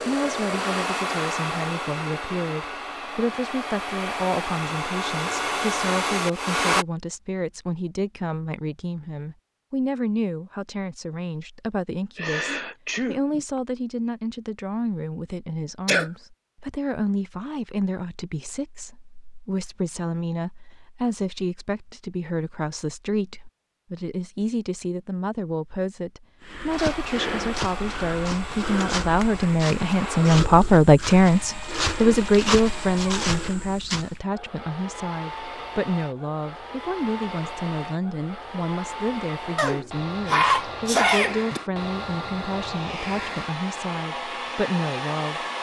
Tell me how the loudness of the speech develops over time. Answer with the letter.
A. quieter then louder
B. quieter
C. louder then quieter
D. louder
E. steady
C.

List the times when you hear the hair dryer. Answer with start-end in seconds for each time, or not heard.
0.0-6.8, 26.6-45.5.